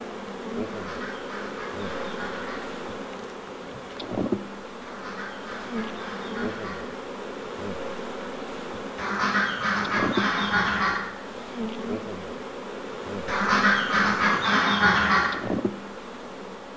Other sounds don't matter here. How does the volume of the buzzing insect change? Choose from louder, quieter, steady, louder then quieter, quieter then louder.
steady.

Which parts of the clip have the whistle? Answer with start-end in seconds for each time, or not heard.
not heard.